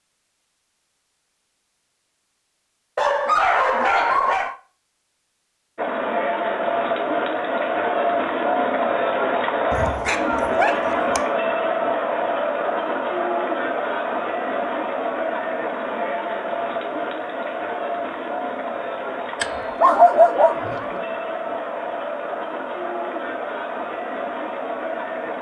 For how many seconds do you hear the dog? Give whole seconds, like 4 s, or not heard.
5 s.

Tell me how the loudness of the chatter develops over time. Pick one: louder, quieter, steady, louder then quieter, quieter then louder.
quieter.